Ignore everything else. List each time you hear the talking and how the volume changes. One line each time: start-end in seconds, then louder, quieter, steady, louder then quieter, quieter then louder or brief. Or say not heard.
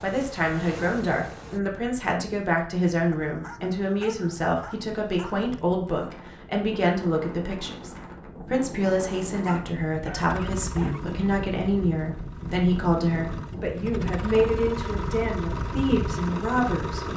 0.0-17.1 steady.